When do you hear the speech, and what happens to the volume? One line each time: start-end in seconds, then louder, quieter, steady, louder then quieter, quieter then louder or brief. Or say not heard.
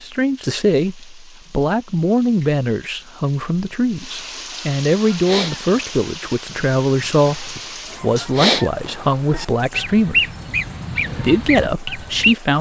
0.0-10.3 steady
11.2-12.5 brief.